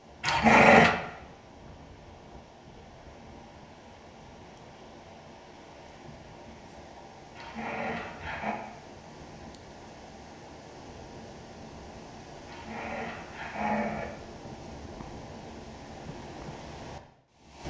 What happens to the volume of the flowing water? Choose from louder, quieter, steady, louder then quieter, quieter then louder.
louder.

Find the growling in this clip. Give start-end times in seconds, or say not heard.
0.2-0.9, 7.3-8.6, 12.4-14.1.